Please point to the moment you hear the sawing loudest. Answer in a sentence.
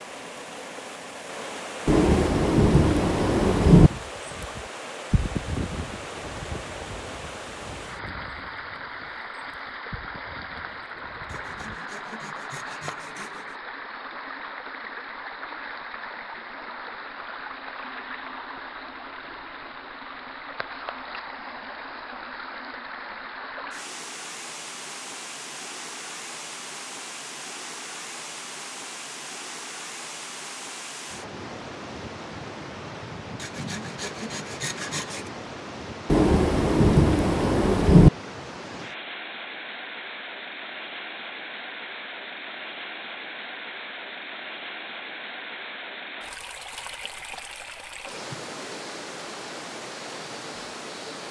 The volume of the sawing peaks at 35 seconds.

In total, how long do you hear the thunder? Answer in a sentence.
The thunder can be heard for 4 seconds in total.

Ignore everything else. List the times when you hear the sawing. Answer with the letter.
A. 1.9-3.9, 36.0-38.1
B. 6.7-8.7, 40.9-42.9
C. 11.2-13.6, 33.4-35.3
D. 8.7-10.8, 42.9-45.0
C.